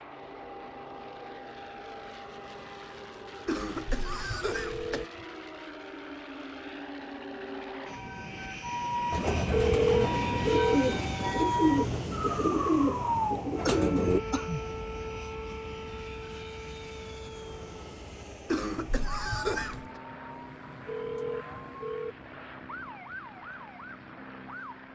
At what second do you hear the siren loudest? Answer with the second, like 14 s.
13 s.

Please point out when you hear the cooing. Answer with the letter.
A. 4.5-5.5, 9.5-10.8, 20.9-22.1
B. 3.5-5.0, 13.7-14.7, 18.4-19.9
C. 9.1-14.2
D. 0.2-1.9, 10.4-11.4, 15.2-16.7
C.